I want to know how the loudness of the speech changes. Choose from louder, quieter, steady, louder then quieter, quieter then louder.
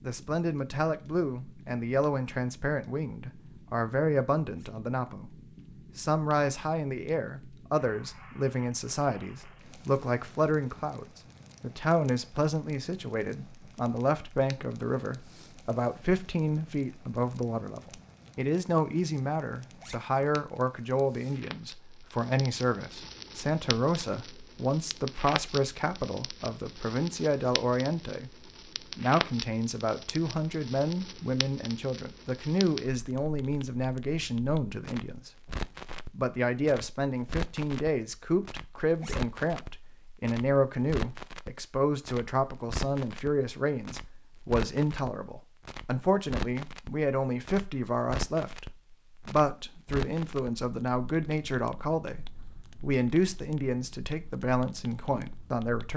steady.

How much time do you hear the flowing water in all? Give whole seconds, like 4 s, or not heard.
not heard.